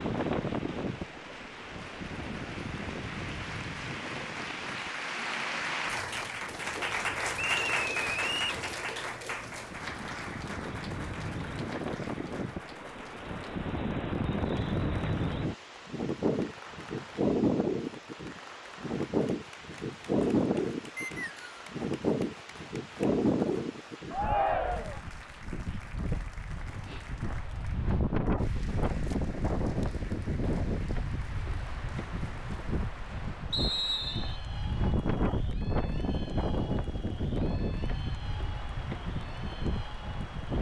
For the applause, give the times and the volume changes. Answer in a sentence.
The applause can be heard from 0.0 to 40.5 s, getting quieter.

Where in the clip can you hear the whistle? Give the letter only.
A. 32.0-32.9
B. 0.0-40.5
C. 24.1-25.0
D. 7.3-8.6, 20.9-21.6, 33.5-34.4
D.